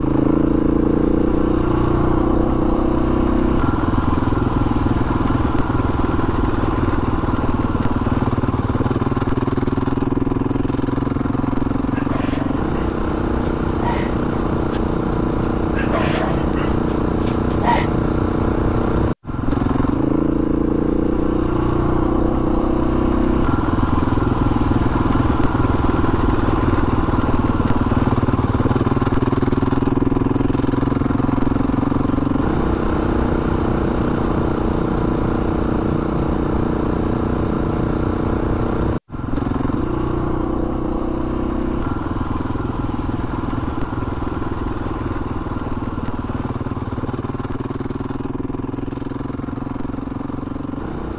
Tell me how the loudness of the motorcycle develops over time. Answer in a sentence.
The volume of the motorcycle goes down.